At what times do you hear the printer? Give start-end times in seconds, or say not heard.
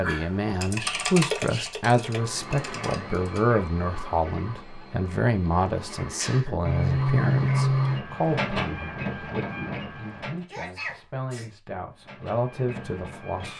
2.0-10.4, 11.9-13.5.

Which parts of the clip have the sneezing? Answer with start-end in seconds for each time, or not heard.
0.8-1.8, 6.0-6.7, 10.3-11.5.